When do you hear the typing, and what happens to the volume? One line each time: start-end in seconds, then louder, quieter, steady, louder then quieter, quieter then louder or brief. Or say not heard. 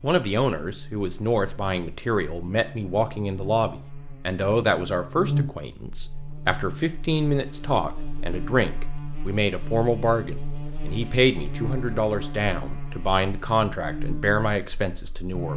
not heard.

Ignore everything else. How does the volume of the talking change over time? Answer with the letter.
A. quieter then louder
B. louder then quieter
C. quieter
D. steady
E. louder
D.